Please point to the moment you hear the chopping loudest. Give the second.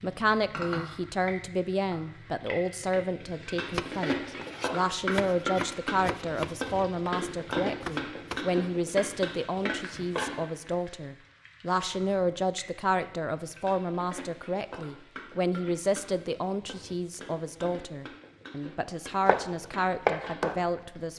20 s.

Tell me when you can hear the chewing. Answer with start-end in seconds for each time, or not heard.
not heard.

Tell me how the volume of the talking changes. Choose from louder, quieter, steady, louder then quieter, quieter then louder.
steady.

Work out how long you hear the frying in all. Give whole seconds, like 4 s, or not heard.
21 s.